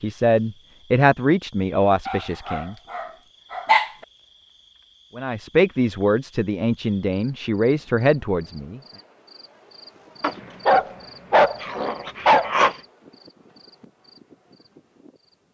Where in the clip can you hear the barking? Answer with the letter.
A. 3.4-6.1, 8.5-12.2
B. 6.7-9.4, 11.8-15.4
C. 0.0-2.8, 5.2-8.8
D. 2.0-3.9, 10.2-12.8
D.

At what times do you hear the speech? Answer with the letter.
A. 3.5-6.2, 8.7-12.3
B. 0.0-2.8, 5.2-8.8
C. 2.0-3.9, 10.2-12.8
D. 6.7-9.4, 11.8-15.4
B.